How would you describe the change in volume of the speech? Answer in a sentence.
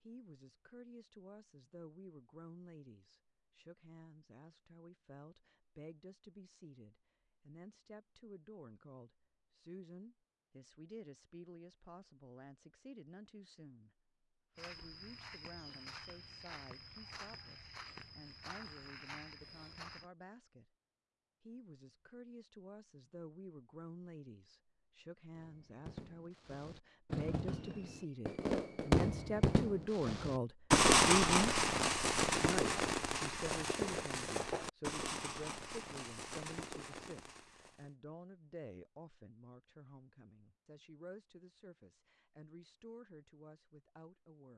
The volume of the speech goes up, then down.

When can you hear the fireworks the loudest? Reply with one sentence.
The loudest moment of the fireworks is at 31 seconds.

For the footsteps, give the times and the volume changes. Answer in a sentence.
You can hear the footsteps from 14.6 to 20.1 s, at a steady volume.